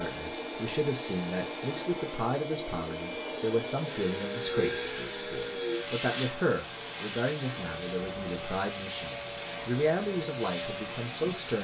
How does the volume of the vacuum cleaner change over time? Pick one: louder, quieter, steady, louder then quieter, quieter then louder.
steady.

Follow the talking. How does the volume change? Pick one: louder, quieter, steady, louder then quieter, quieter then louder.
steady.